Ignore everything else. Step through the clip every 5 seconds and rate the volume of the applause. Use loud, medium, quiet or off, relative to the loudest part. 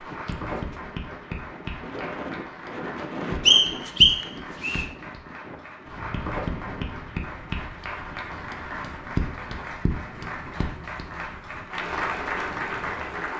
medium, loud, loud.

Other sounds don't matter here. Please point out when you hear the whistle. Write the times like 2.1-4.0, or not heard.
3.5-4.8.